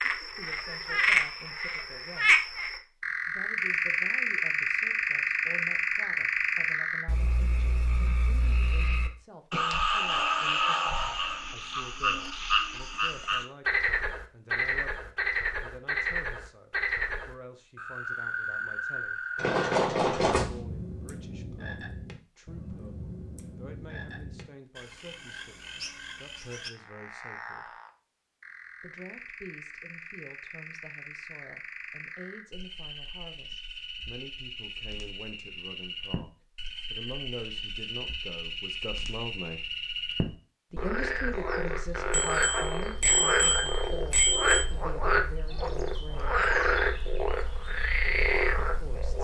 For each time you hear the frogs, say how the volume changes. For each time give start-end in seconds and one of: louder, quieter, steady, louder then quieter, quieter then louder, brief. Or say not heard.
0.0-49.1 quieter then louder.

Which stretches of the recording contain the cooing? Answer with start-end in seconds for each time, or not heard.
not heard.